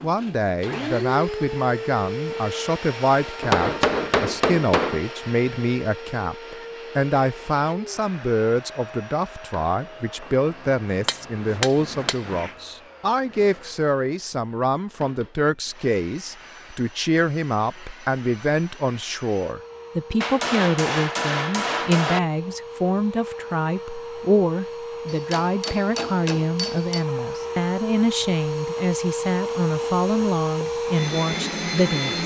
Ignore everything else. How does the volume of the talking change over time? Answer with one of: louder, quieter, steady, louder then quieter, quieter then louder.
steady.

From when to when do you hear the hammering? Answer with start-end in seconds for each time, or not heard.
3.4-5.0, 11.1-12.6, 20.2-22.2, 25.1-27.1.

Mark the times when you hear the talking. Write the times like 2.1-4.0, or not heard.
0.0-32.2.